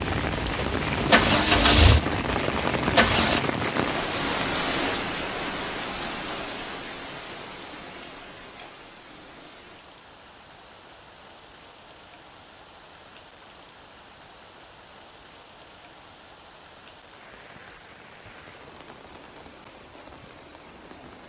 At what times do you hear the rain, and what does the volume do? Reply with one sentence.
The rain can be heard from 0.0 to 21.2 s, getting quieter.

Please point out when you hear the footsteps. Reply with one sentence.
You can't hear the footsteps here.